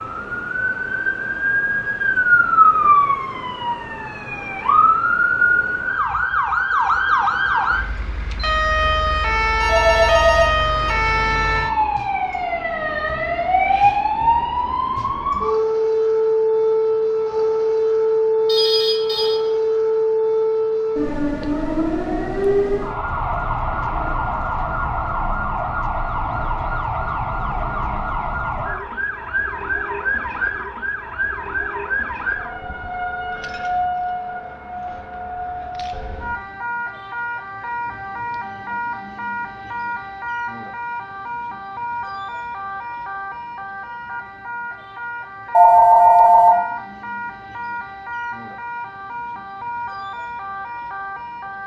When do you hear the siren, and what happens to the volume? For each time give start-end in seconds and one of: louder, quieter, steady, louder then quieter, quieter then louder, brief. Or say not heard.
0.0-51.6 quieter.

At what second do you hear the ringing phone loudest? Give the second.
46 s.